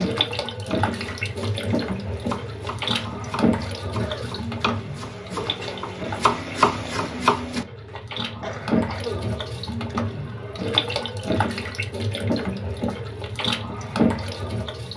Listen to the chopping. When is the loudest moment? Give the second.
7 s.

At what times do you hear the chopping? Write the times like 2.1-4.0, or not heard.
0.9-7.7.